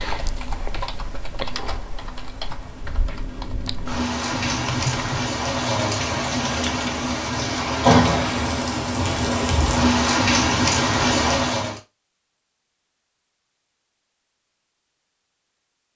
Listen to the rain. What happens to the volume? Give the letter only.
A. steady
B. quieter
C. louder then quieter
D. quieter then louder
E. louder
E.